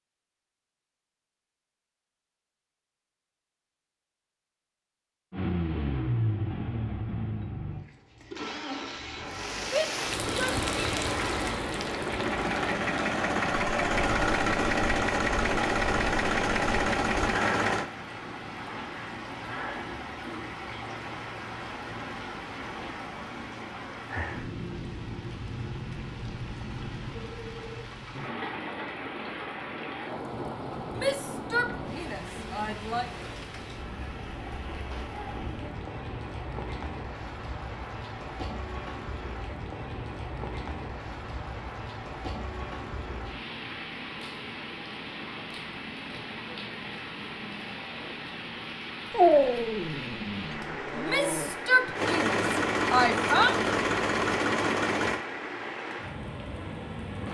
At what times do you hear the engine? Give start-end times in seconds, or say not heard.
5.3-17.9, 52.0-55.2.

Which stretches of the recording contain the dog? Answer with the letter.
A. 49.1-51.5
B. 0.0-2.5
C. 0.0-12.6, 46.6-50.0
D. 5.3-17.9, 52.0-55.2
A.